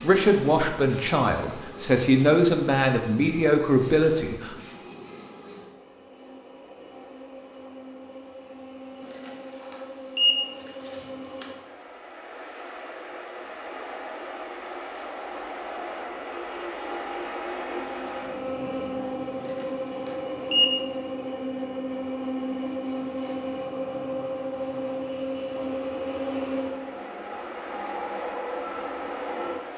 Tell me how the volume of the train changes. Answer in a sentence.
The loudness of the train goes up.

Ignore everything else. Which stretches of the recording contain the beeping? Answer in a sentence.
The beeping can be heard from 9.0 to 11.4 s and from 19.4 to 20.8 s.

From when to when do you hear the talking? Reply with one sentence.
The talking can be heard from 0.0 to 4.5 s.